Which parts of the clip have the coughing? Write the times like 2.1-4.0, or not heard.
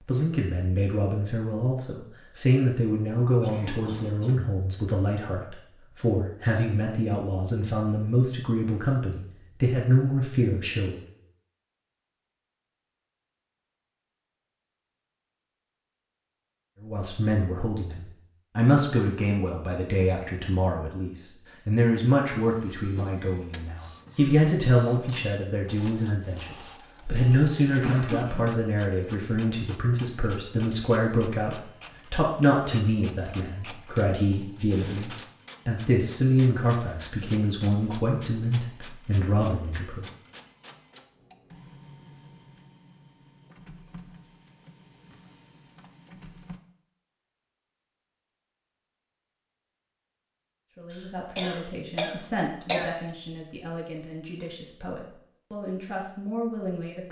3.4-4.4, 27.0-28.6, 50.9-52.9.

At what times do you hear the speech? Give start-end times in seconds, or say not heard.
0.1-11.0, 16.8-40.0, 50.8-57.0.